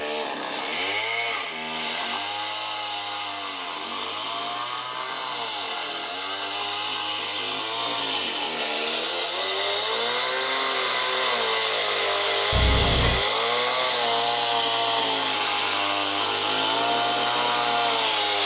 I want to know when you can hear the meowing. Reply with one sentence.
The meowing can be heard from 12.5 to 13.2 s.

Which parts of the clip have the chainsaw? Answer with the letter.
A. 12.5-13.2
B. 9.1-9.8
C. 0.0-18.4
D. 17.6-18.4
C.